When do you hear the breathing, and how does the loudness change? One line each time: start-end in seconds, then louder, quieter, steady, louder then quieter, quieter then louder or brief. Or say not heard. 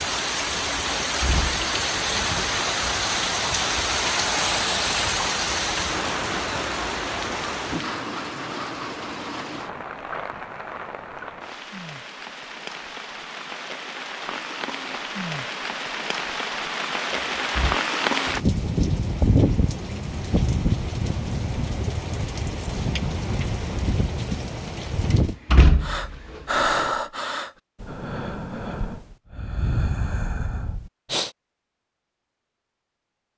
25.8-31.3 quieter.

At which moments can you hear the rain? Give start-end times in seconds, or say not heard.
0.0-25.4.